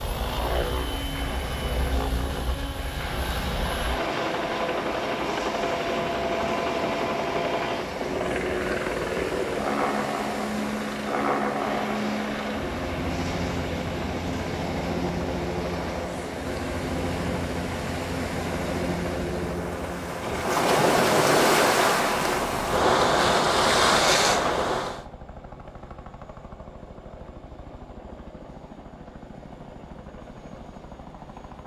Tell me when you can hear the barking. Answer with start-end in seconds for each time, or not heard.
not heard.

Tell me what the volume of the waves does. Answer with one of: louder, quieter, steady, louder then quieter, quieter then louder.
louder.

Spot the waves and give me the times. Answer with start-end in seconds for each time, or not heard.
0.0-25.1.